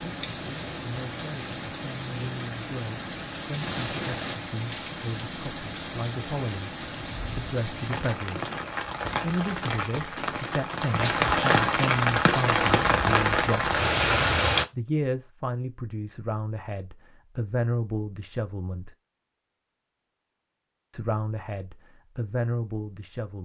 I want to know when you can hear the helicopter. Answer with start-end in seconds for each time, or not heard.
not heard.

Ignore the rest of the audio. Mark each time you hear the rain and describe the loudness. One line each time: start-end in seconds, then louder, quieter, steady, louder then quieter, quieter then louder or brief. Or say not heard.
0.0-14.7 louder.